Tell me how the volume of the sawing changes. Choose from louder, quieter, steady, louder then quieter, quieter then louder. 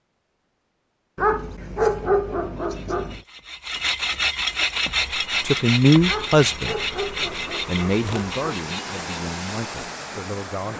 louder then quieter.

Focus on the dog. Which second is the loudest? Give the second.
2 s.